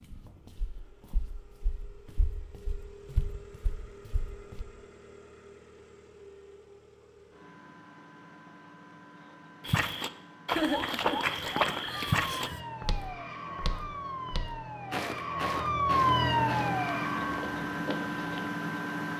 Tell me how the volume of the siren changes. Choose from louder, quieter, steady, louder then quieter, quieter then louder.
louder.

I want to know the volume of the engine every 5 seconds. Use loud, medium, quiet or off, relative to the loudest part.
quiet, quiet, quiet, loud.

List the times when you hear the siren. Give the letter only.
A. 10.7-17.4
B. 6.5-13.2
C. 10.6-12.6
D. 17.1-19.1
A.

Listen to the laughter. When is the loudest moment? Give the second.
11 s.